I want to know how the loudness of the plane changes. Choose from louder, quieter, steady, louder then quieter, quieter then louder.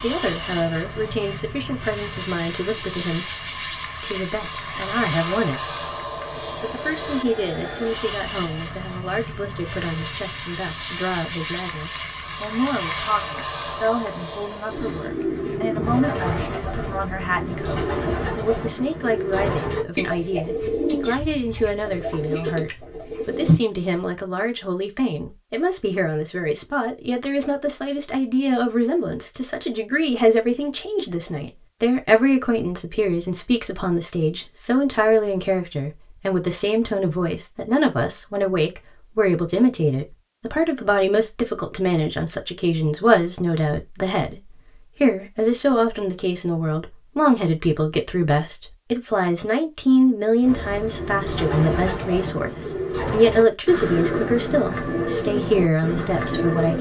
steady.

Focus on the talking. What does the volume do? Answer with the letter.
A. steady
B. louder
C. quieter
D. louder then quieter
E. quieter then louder
B.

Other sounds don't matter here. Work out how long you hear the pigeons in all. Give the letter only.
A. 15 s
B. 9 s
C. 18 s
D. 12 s
A.